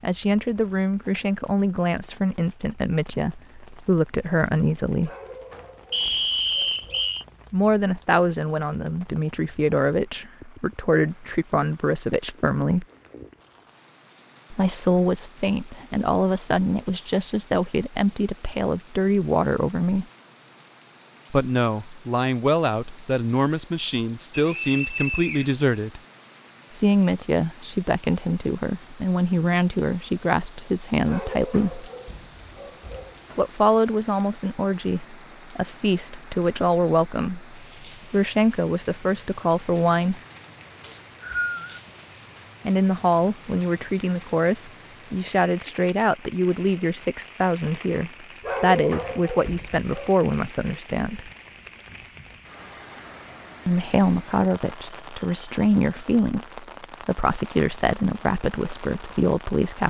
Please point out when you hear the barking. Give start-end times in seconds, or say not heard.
5.0-7.2, 31.1-33.5, 48.4-50.1.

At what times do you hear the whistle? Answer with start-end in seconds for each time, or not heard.
5.9-7.2, 24.3-25.6, 40.8-41.8.